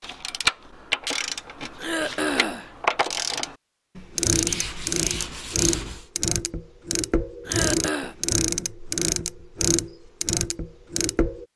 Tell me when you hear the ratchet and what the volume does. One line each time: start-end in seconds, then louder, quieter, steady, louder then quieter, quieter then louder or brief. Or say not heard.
0.0-11.4 steady.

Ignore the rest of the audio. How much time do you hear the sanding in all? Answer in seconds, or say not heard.
2 s.